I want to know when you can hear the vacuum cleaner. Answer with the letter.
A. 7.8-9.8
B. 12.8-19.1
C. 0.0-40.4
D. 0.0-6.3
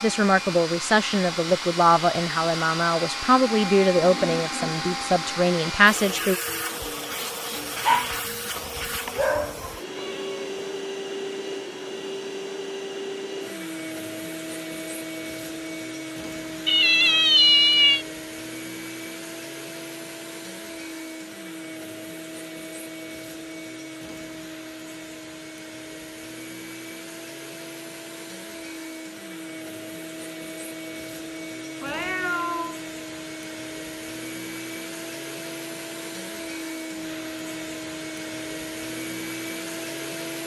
C.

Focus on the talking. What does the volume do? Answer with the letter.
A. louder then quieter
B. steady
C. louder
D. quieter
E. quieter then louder
B.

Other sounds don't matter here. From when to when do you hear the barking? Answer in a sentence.
You can hear the barking from 7.8 to 9.8 s.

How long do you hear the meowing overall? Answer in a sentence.
You can hear the meowing for 4 seconds altogether.